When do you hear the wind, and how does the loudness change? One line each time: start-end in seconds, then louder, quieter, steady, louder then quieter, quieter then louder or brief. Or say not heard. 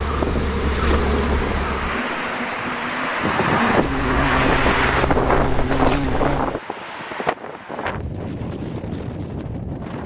0.0-10.0 louder then quieter.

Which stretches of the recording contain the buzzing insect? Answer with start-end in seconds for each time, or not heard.
0.0-6.6.